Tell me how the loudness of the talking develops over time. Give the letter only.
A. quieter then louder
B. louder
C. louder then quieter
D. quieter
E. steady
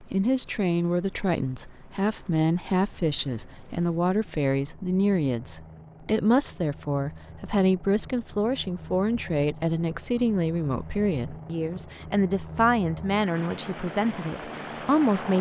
E.